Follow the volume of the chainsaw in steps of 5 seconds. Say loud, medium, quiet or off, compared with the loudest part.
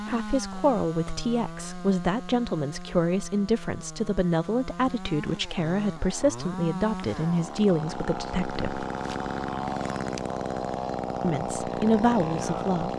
medium, loud, loud.